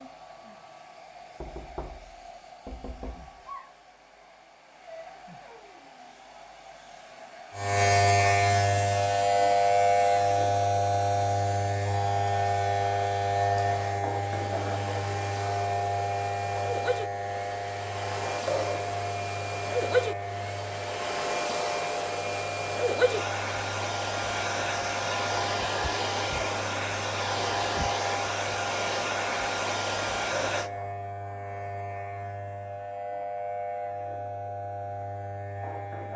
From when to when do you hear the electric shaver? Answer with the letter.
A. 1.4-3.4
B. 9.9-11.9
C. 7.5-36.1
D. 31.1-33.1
C.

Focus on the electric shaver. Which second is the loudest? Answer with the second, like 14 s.
10 s.